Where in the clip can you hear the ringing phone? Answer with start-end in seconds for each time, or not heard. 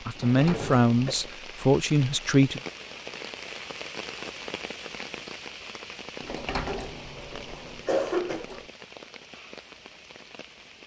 not heard.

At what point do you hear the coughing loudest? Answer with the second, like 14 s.
8 s.